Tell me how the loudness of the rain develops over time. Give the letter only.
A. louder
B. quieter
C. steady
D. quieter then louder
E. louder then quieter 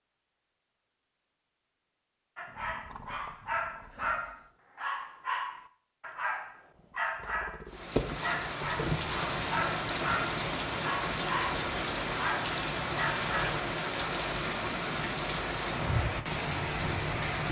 C.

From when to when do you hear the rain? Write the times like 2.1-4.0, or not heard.
7.7-17.4.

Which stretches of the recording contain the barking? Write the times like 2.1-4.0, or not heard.
2.4-13.6.